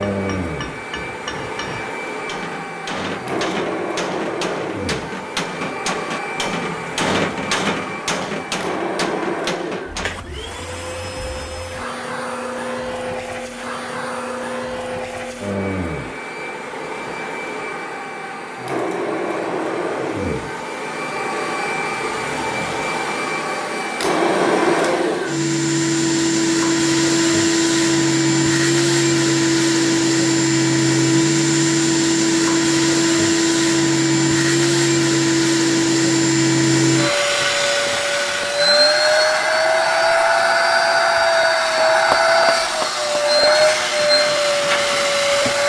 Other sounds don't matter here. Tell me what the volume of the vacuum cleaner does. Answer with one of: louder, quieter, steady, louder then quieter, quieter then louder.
louder.